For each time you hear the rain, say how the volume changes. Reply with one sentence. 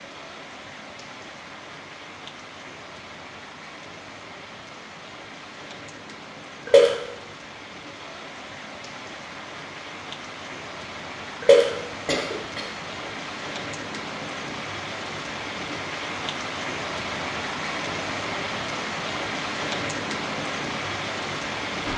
You can hear the rain from 0.0 to 21.9 s, getting louder.